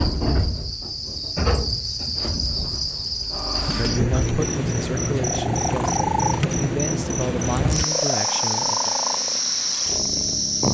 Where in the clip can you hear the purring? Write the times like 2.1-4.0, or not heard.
4.3-10.6.